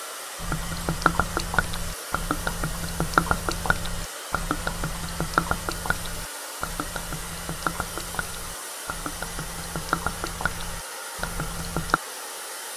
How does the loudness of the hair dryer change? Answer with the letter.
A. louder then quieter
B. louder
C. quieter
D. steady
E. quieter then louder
D.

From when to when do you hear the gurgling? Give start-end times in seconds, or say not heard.
0.4-12.0.